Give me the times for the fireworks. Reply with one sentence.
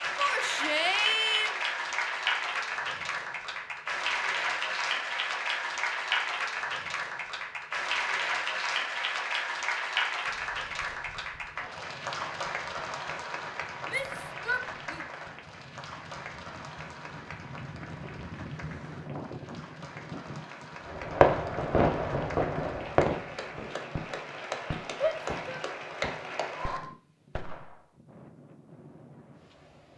You can hear the fireworks from 20.9 to 27.9 s.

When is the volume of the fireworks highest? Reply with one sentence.
The volume of the fireworks peaks at 21 seconds.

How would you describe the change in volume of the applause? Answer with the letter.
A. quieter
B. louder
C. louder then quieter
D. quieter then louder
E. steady
D.